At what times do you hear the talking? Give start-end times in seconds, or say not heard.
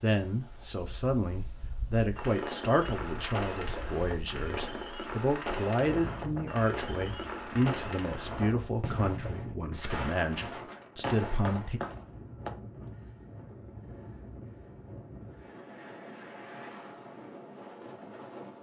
0.0-11.8.